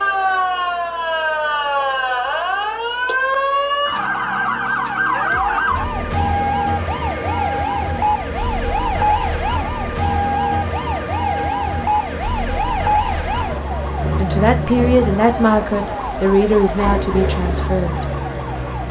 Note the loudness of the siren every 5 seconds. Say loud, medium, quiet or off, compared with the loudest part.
loud, loud, loud, medium.